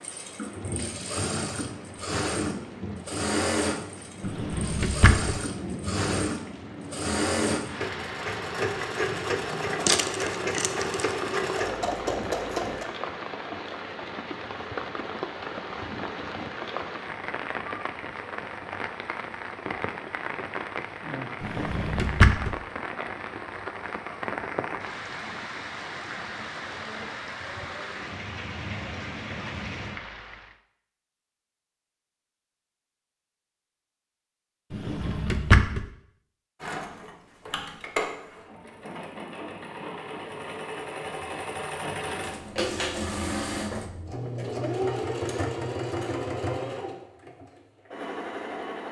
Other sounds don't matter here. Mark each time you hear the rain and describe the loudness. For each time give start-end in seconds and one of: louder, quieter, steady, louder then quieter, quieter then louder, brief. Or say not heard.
0.0-30.6 steady.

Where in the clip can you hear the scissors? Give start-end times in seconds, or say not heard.
not heard.